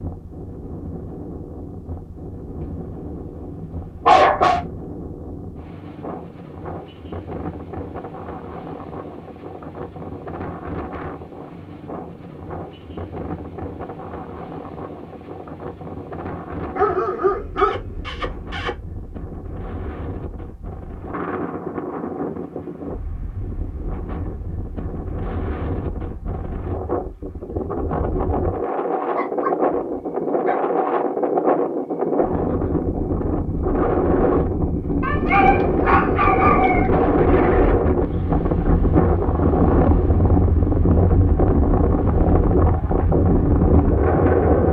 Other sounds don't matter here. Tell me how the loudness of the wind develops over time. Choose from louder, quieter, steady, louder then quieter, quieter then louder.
louder.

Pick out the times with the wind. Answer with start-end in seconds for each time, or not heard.
0.0-44.6.